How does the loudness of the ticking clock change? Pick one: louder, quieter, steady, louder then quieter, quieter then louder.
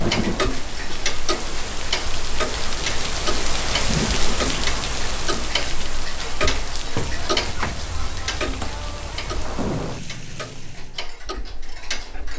quieter.